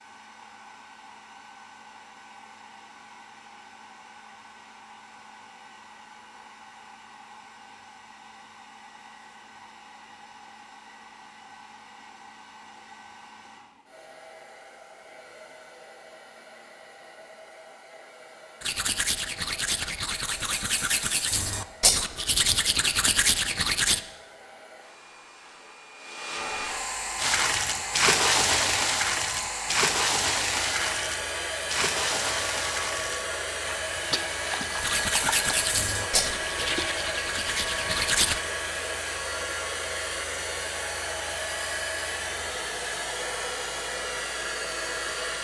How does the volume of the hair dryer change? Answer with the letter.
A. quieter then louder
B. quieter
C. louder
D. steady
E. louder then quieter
C.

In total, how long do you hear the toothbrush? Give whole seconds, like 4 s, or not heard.
9 s.